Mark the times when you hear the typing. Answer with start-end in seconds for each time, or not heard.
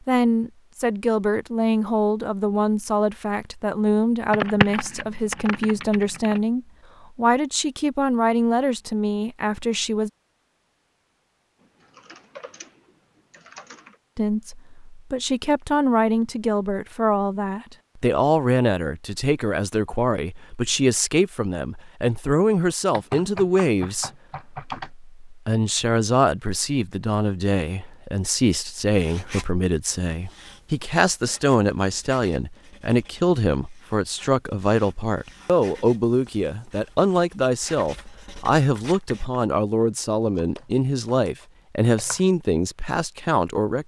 4.3-6.4, 11.9-12.7, 13.3-13.9, 22.9-24.9, 40.2-42.2.